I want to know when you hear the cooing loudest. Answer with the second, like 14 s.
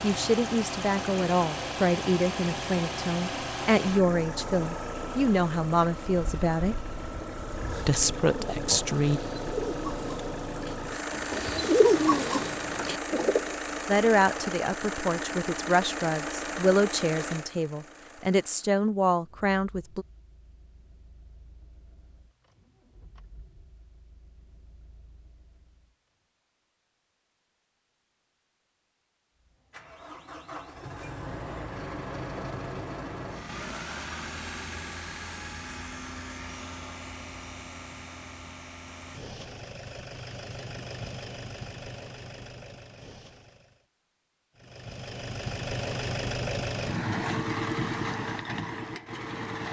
12 s.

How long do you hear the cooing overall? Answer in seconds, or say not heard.
5 s.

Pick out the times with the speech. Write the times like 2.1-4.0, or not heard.
0.0-6.8, 7.8-9.2, 13.8-20.1.